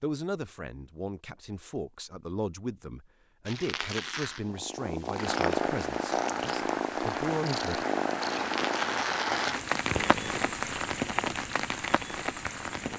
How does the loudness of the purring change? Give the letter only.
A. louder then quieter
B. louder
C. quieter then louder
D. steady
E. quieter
E.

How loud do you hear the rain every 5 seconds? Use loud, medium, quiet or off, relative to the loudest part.
off, loud, loud.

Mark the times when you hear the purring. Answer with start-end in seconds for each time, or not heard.
4.5-12.9.